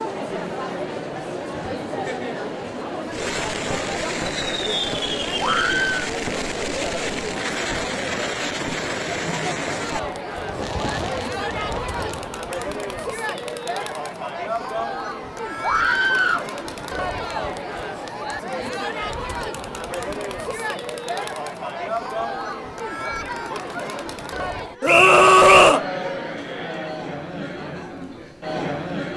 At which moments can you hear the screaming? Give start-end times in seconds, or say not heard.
5.4-6.0, 15.6-16.4, 24.8-25.9.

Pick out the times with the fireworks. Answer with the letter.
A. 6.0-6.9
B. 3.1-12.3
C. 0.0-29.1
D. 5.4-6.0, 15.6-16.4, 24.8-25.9
B.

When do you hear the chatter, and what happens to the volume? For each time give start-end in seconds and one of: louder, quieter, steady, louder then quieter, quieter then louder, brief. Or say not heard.
0.0-29.1 steady.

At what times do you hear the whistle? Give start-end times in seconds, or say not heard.
24.9-25.8.